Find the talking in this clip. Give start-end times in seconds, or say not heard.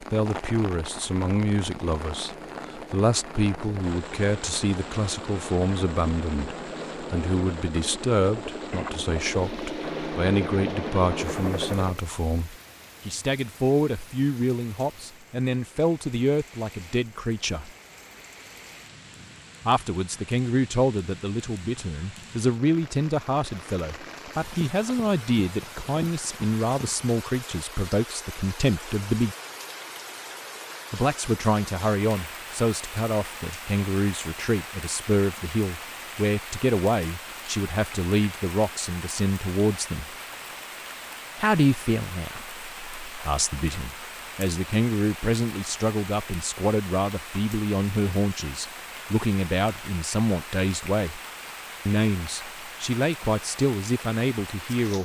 0.0-17.7, 19.6-29.4, 30.9-40.1, 41.4-51.2, 51.9-54.9.